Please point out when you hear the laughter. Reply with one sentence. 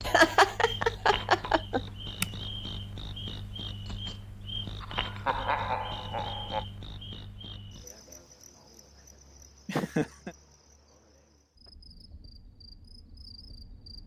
The laughter can be heard from 0.1 to 2.2 s, from 4.8 to 6.7 s and from 9.7 to 10.3 s.